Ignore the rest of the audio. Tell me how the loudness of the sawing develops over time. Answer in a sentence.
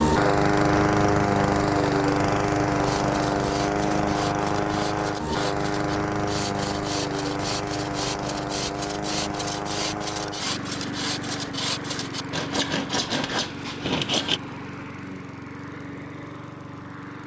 The volume of the sawing goes up.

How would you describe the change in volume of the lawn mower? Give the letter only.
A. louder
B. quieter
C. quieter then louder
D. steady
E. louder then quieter
B.